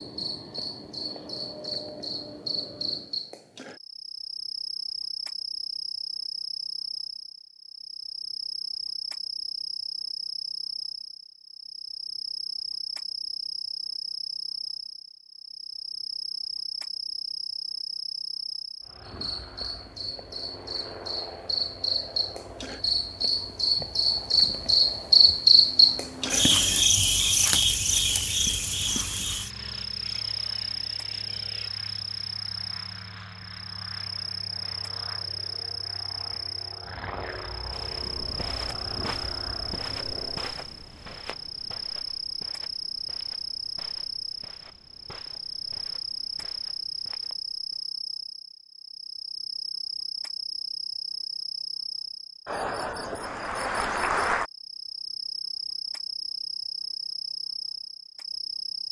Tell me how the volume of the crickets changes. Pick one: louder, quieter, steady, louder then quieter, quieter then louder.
louder then quieter.